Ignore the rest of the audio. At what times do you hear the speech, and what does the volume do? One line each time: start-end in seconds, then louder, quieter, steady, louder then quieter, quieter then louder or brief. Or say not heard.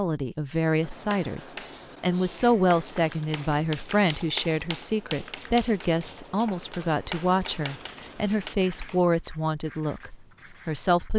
0.0-11.1 steady.